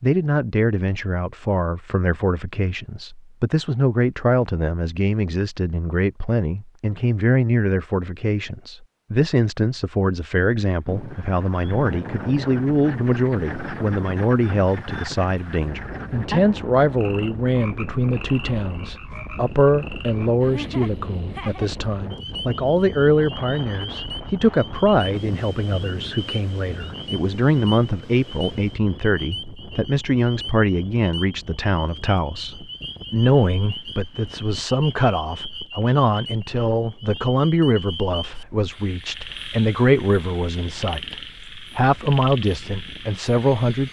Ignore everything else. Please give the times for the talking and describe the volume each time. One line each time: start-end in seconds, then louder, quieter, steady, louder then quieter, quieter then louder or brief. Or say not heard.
0.0-43.8 steady.